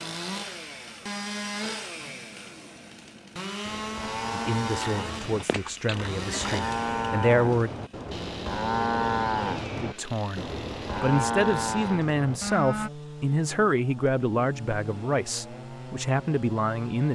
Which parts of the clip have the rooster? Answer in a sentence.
The rooster can be heard from 4.8 to 6.8 s.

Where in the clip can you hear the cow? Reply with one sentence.
You can hear the cow from 3.6 to 12.9 s.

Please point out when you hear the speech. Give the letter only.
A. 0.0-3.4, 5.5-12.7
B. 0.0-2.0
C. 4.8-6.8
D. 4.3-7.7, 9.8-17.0
D.